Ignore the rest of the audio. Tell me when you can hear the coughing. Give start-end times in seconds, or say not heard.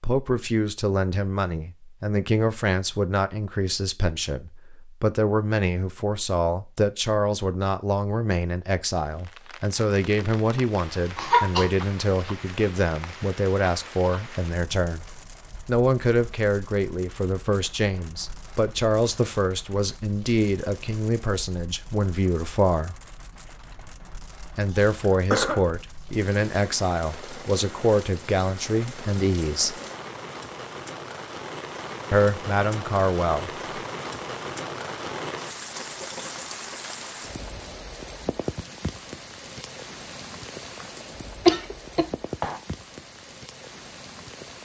11.2-11.7, 24.6-25.6, 41.5-42.6.